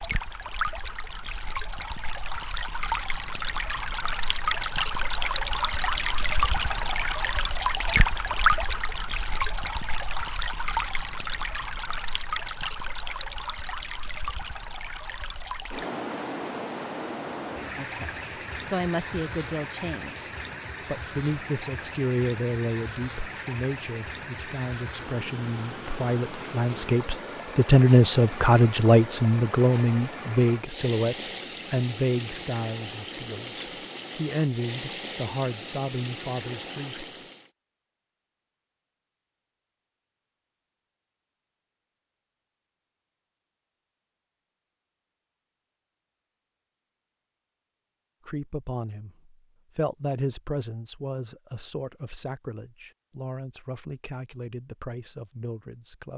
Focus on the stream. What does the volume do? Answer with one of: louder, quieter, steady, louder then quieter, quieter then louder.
quieter.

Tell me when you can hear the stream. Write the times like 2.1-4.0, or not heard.
0.0-37.5.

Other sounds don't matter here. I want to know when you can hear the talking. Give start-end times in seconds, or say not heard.
17.8-37.0, 48.2-56.1.